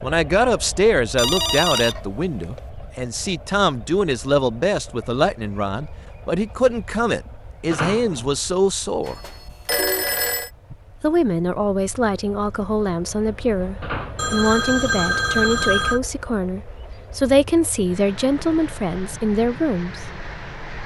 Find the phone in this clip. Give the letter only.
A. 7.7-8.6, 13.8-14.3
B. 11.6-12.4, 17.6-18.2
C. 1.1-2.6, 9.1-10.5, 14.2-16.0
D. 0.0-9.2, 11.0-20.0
C.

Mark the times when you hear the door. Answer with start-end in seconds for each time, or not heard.
7.7-8.6, 13.8-14.3.